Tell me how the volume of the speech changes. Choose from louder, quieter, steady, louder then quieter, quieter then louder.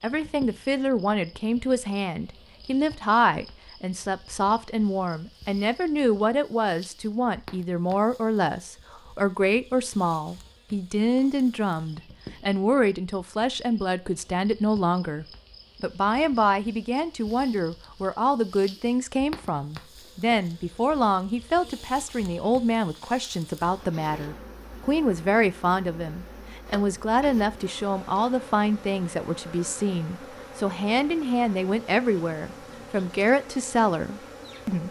steady.